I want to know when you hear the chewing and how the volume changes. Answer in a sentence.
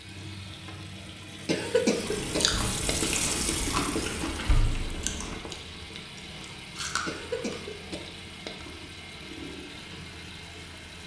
The chewing can be heard from 2.0 to 7.8 s, getting quieter then louder.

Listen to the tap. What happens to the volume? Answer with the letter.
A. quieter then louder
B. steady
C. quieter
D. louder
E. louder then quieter
E.